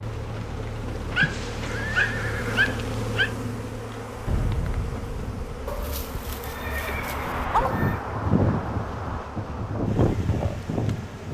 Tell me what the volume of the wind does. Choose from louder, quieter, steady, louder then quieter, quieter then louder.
louder.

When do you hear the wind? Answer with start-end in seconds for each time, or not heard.
0.0-11.2.